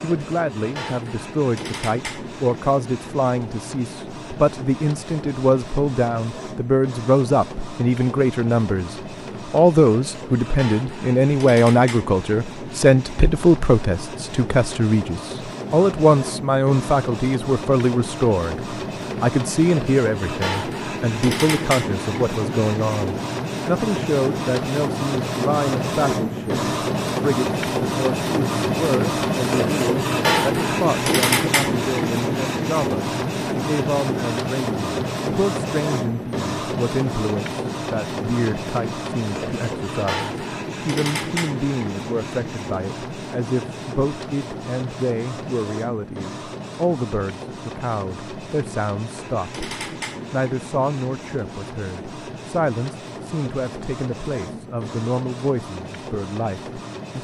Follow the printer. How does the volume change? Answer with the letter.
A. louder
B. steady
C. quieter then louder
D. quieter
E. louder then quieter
E.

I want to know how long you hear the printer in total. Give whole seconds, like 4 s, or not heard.
57 s.